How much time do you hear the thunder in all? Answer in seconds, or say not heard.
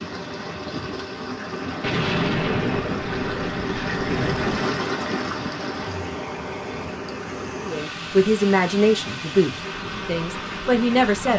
3 s.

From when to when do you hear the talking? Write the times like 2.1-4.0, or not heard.
7.6-11.3.